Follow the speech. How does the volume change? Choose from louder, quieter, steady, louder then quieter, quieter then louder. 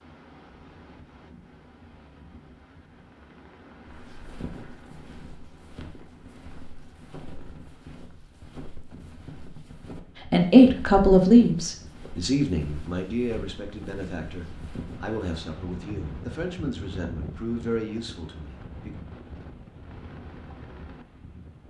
quieter.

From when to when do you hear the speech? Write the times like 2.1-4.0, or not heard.
10.2-18.9.